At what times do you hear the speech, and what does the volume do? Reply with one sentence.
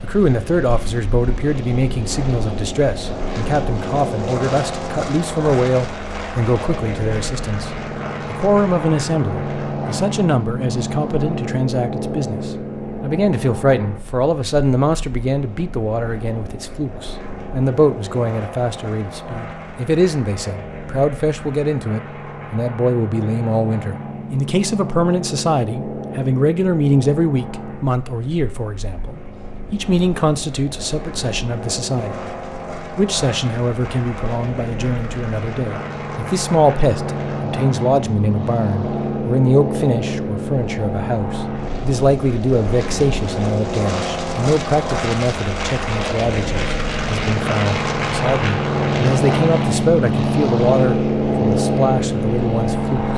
You can hear the speech from 0.0 to 7.7 s, at a steady volume; and from 8.3 to 53.1 s, at a steady volume.